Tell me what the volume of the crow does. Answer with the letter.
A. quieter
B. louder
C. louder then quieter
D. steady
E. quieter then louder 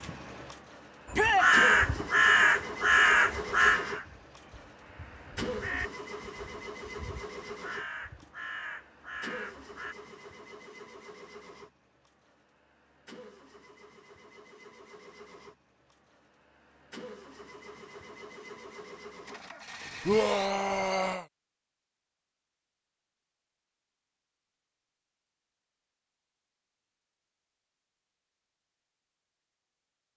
A.